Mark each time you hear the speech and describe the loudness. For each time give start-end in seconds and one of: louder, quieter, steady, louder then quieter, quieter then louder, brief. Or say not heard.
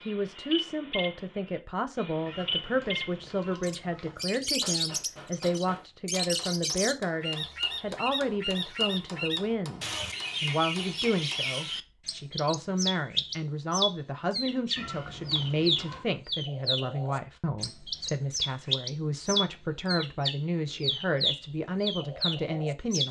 0.1-23.0 steady.